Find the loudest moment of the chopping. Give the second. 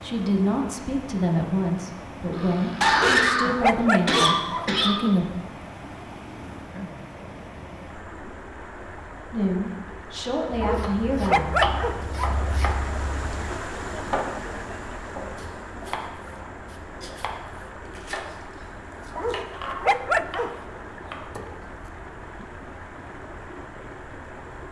12 s.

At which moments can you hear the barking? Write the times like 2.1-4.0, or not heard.
3.0-4.8, 10.6-12.6, 19.1-20.6.